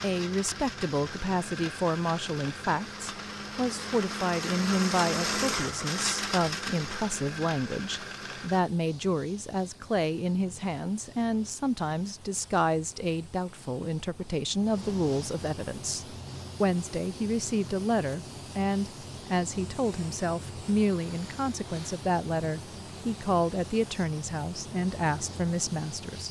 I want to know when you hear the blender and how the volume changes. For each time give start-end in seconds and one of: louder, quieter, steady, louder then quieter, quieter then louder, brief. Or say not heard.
0.0-8.7 louder then quieter.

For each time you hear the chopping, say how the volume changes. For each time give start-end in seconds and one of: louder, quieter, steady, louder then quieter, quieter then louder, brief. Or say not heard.
not heard.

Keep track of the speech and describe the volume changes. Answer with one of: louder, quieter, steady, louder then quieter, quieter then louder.
steady.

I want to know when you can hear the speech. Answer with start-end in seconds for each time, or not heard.
0.0-26.2.